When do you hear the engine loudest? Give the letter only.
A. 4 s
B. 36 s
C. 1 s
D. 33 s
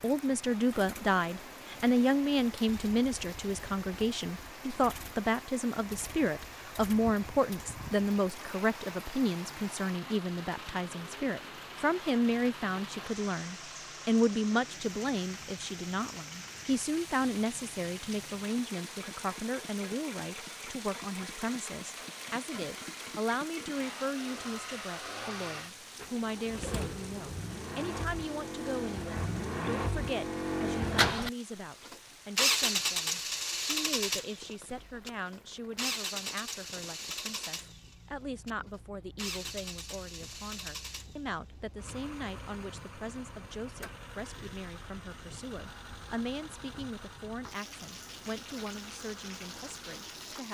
D.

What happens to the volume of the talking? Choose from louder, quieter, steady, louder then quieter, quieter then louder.
quieter.